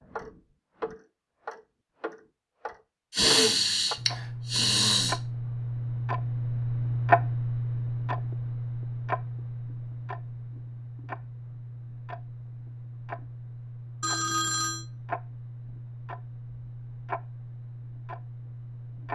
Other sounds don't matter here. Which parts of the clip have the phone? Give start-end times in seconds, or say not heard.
14.0-14.8.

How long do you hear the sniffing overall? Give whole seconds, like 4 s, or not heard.
2 s.